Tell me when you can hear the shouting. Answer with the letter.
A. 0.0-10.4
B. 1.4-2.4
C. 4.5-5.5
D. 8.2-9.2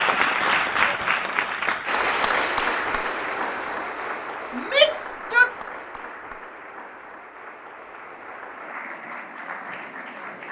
C.